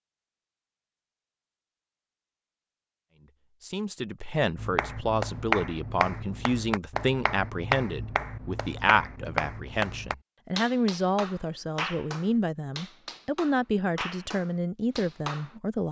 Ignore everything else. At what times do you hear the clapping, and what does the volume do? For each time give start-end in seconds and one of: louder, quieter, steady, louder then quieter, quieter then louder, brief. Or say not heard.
4.5-15.6 quieter.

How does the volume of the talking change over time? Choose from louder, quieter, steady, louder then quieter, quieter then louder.
steady.